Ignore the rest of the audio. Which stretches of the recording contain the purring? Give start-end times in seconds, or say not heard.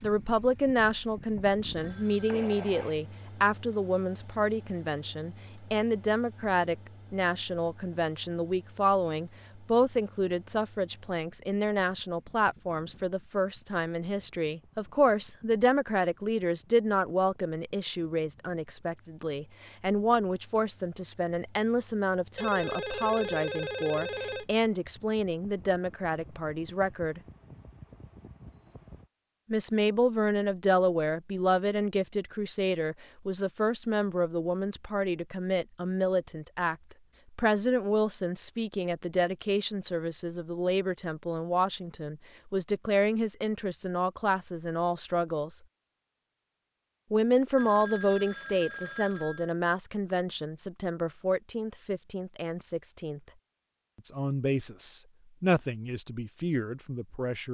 not heard.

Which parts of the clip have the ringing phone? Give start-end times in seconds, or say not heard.
1.8-3.0, 22.4-24.6, 47.5-49.5.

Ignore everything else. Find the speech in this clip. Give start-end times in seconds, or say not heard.
0.0-27.2, 29.5-36.8, 37.4-45.6, 47.1-53.2, 54.0-57.5.